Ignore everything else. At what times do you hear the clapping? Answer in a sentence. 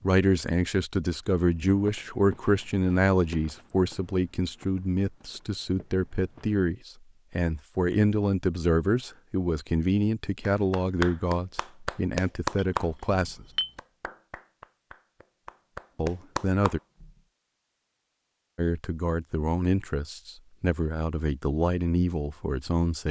You can hear the clapping from 10.5 to 17.1 s.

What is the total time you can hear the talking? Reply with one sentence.
The talking can be heard for 19 seconds in total.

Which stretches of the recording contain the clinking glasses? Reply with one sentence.
You can hear the clinking glasses from 12.6 to 13.7 s.